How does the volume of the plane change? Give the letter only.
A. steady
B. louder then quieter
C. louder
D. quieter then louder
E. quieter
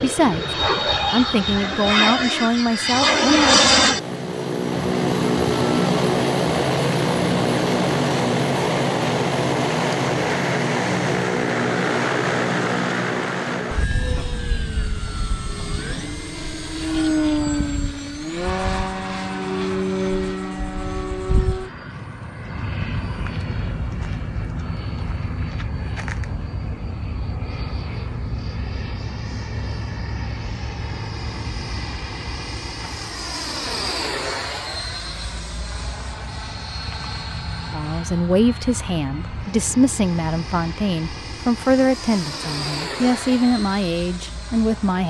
E.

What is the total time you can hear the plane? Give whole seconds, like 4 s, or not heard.
45 s.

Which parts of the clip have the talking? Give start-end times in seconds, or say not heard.
0.0-3.6, 37.7-45.0.